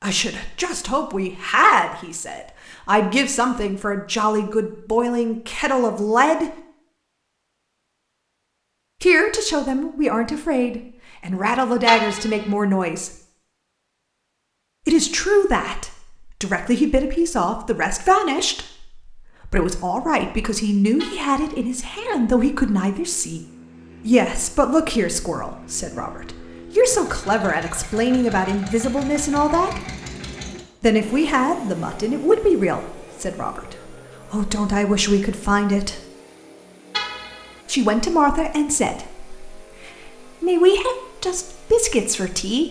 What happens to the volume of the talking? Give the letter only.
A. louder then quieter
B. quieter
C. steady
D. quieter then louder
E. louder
C.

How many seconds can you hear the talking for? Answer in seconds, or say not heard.
35 s.